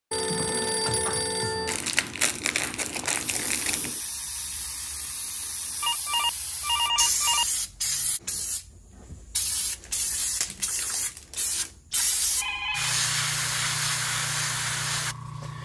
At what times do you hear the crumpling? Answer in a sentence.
The crumpling can be heard from 1.6 to 4.0 s and from 9.8 to 11.8 s.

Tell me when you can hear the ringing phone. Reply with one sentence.
You can hear the ringing phone from 0.1 to 1.8 s, from 5.8 to 7.5 s and from 11.9 to 12.9 s.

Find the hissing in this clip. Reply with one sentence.
The hissing can be heard from 3.2 to 15.6 s.